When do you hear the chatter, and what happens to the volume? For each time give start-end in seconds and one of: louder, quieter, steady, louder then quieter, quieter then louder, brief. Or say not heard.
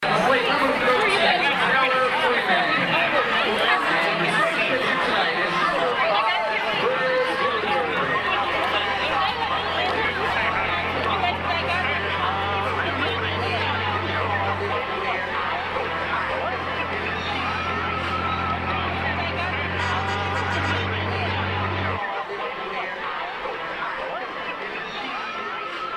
0.0-25.9 quieter.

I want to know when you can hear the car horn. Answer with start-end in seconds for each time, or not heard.
19.8-20.9.